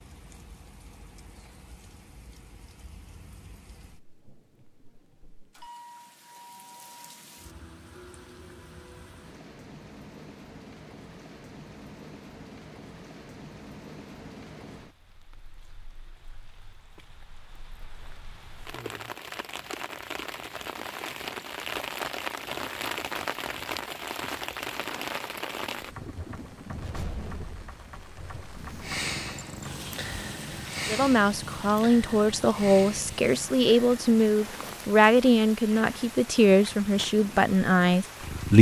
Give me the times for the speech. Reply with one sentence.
You can hear the speech from 30.9 to 38.5 s.